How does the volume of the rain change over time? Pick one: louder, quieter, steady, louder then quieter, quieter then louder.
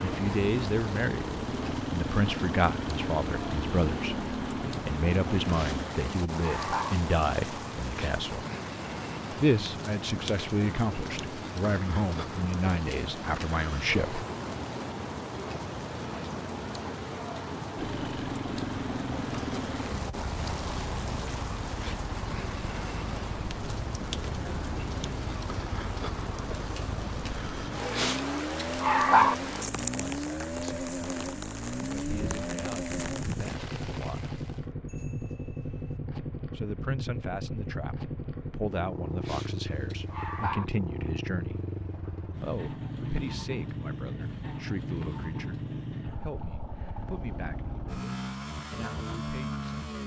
steady.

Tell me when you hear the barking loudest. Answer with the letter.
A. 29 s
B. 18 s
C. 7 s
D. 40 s
A.